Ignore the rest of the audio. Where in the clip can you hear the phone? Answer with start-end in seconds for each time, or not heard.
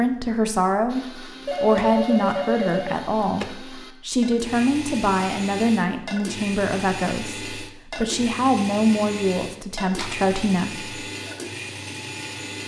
1.4-3.5, 9.9-10.3.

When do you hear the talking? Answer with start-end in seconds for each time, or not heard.
0.0-10.9.